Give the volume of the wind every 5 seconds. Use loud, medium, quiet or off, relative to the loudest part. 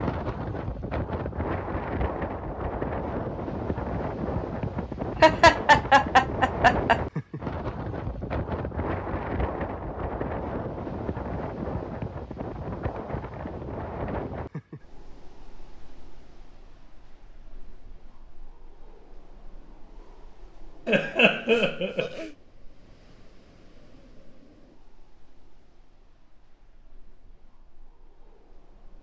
loud, loud, loud, quiet, quiet, quiet.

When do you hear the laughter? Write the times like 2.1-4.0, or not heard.
4.8-7.0, 20.9-22.2.